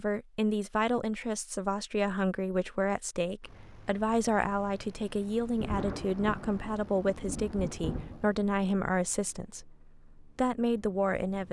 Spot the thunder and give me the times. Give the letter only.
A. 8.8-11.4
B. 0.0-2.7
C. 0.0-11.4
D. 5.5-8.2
D.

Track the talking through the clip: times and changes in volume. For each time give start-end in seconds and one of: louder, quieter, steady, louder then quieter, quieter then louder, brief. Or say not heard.
0.0-11.4 steady.